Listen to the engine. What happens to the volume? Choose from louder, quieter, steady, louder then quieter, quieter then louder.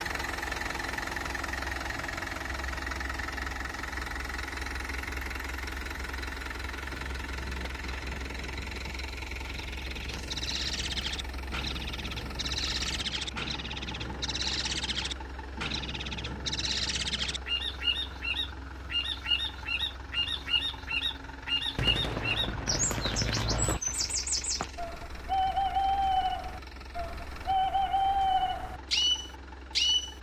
quieter.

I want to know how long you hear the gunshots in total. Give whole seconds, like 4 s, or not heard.
4 s.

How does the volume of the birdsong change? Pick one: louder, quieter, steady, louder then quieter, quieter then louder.
louder.